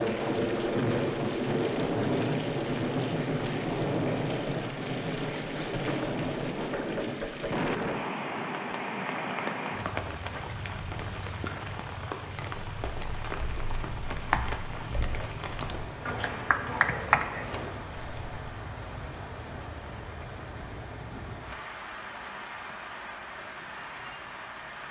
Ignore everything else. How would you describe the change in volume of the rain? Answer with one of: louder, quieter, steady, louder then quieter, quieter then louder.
quieter.